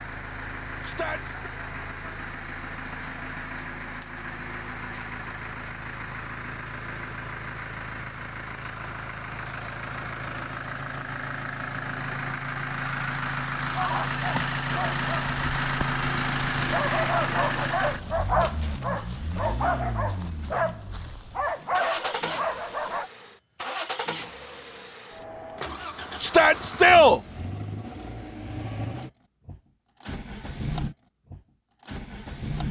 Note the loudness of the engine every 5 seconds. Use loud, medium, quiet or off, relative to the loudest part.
medium, medium, loud, loud, medium, medium, medium.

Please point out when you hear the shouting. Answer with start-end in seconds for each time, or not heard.
0.8-1.5, 26.2-27.2.